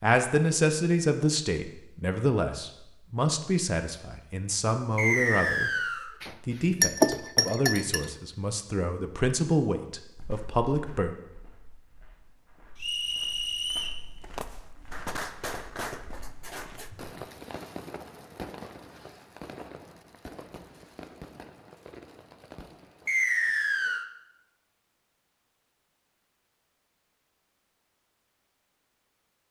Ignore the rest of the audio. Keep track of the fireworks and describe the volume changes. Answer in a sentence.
The loudness of the fireworks goes down.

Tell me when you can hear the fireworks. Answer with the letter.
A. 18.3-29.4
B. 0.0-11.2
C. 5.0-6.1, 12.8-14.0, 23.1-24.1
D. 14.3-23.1
D.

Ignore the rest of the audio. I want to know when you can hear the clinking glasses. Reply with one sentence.
The clinking glasses can be heard from 6.2 to 8.1 s.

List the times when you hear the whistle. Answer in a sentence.
The whistle can be heard from 5.0 to 6.1 s, from 12.8 to 14.0 s and from 23.1 to 24.1 s.